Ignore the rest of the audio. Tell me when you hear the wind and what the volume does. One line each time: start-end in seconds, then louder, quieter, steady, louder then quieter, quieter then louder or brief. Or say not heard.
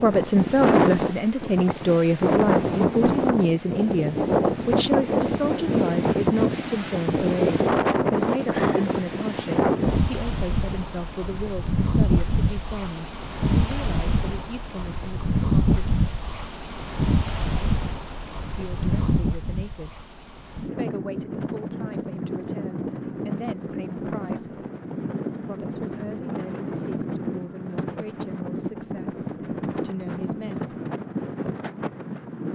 0.0-32.4 quieter.